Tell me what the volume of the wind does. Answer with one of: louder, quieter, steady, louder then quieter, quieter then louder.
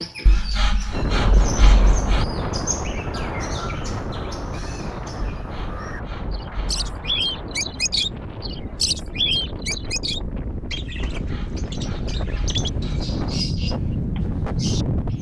quieter then louder.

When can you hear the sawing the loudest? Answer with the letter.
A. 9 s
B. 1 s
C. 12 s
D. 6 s
B.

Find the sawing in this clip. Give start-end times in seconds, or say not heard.
0.2-2.2, 5.3-7.2, 11.2-13.0.